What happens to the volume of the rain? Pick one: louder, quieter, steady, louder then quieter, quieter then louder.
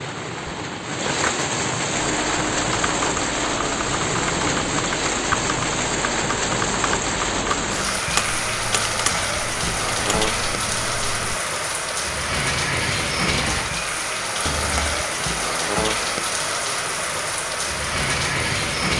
steady.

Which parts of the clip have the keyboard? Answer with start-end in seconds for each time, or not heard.
2.0-11.4.